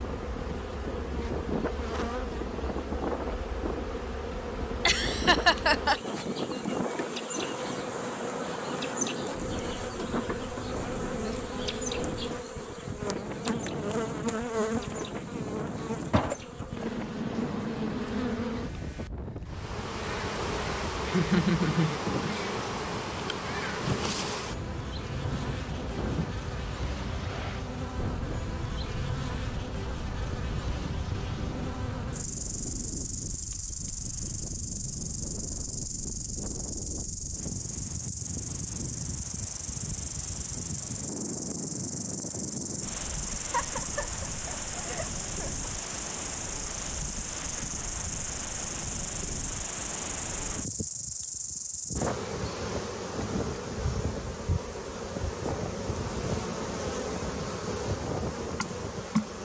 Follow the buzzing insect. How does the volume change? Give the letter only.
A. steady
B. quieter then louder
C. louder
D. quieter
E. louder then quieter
A.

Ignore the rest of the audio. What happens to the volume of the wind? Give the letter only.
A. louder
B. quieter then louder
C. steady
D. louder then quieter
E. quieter
C.